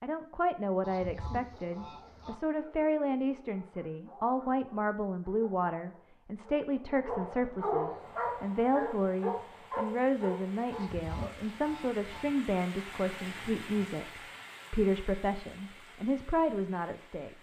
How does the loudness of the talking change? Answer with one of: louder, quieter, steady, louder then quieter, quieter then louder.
steady.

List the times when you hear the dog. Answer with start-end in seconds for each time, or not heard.
1.6-11.3.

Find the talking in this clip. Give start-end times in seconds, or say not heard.
0.0-17.3.